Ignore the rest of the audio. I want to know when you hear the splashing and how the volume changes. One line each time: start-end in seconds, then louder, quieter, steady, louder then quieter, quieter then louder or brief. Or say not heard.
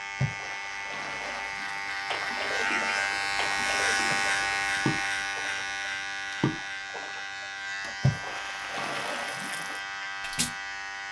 0.1-5.7 louder
6.3-10.5 louder then quieter.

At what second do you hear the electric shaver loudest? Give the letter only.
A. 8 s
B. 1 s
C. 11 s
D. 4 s
D.